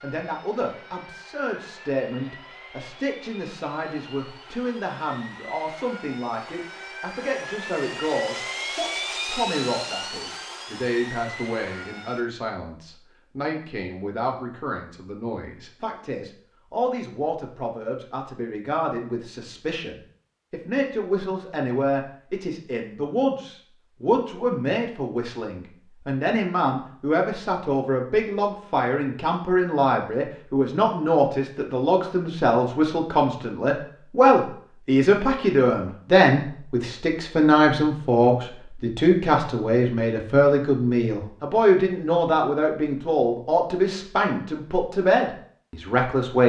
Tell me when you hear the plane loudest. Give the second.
9 s.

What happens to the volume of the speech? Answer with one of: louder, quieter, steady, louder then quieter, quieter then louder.
louder.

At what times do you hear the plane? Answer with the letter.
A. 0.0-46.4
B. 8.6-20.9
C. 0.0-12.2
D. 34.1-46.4
C.